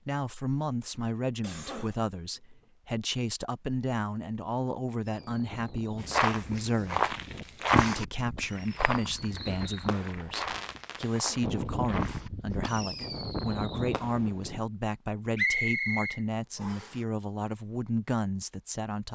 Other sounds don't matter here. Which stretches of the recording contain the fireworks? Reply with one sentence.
You can hear the fireworks from 5.0 to 14.6 s.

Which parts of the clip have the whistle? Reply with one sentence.
The whistle can be heard from 15.3 to 16.9 s.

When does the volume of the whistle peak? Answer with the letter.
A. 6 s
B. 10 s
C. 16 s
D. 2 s
C.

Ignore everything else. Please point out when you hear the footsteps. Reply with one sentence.
The footsteps can be heard from 6.0 to 12.8 s.